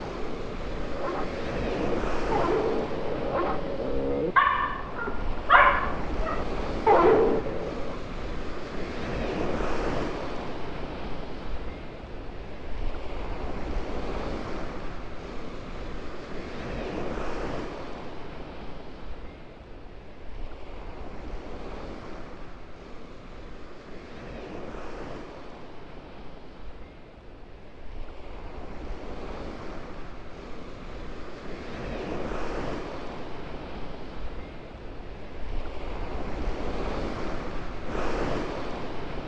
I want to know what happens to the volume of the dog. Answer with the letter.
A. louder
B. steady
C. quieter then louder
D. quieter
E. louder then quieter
A.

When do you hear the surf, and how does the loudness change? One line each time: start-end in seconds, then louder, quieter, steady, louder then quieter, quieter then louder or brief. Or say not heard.
0.0-39.2 quieter then louder.